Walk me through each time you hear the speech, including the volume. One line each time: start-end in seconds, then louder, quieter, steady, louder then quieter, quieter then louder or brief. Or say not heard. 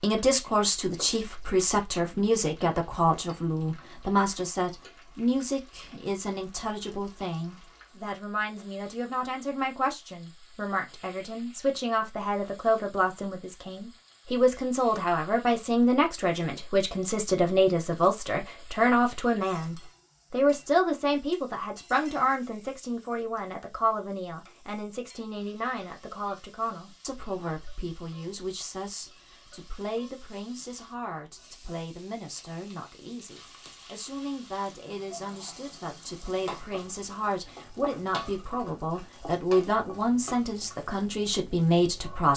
0.0-42.3 quieter then louder.